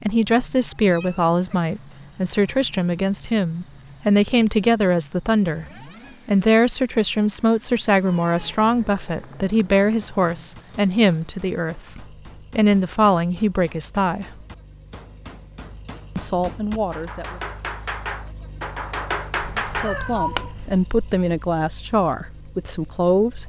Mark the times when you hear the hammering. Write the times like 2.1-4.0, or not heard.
9.8-20.4.